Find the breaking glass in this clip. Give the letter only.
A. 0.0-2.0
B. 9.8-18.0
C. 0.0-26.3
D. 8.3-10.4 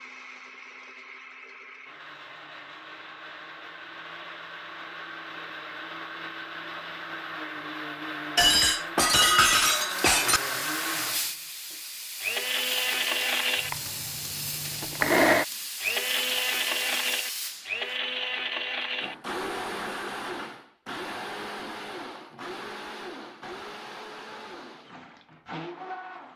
D.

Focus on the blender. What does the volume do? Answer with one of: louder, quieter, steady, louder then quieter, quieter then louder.
louder then quieter.